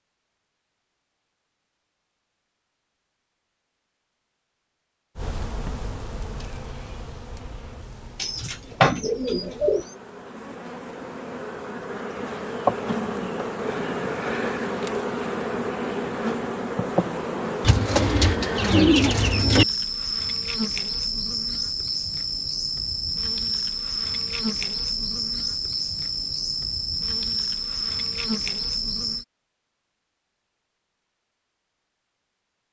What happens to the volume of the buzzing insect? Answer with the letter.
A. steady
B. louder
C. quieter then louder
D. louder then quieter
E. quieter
B.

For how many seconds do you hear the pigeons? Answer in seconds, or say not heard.
4 s.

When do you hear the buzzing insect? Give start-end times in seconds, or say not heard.
5.2-29.2.